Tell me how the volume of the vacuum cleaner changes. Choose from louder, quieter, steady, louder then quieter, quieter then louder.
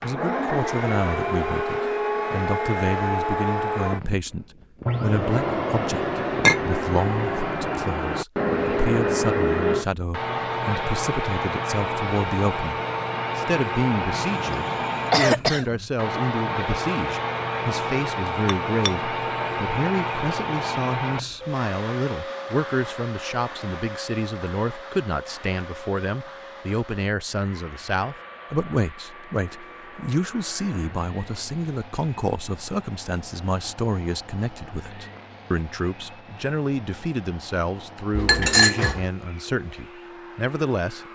quieter.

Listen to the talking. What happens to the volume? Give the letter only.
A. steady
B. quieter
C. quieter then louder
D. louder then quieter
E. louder
A.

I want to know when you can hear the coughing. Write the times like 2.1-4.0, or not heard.
14.1-15.7.